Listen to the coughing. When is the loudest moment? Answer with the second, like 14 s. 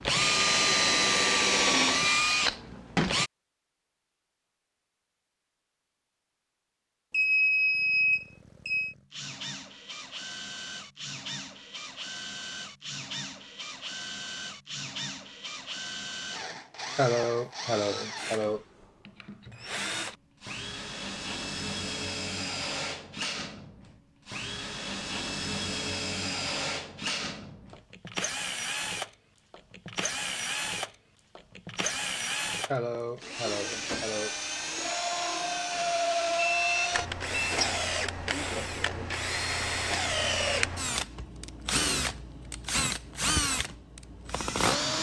17 s.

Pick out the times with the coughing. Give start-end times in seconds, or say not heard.
16.9-18.6, 32.7-34.4.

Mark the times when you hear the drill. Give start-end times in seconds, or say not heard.
0.0-3.3, 7.7-44.9.